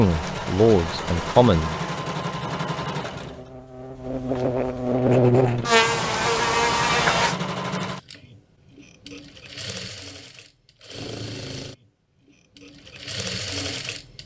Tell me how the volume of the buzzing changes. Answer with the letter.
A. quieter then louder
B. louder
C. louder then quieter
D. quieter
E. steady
B.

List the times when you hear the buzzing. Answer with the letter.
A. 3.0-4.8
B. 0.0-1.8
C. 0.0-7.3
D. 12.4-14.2
C.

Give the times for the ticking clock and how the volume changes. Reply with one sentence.
You can't hear the ticking clock here.